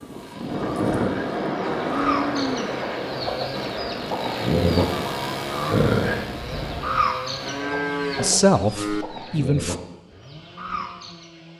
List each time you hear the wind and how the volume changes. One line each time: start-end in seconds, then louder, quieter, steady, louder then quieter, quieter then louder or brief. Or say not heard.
0.0-6.9 quieter.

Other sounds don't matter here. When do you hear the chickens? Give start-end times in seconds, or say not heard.
0.0-11.5.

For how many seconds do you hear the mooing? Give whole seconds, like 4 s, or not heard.
3 s.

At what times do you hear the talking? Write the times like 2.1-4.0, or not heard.
8.2-9.8.